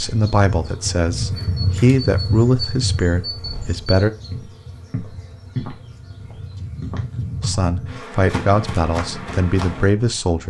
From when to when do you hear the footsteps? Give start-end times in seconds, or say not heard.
3.4-9.9.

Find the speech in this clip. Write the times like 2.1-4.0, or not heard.
0.0-4.1, 7.4-10.4.